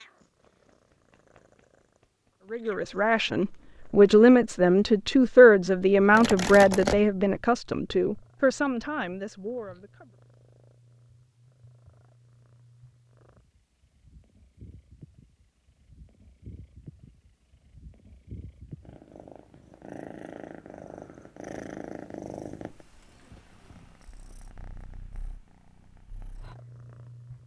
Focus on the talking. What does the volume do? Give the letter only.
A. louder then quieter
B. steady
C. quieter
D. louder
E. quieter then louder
C.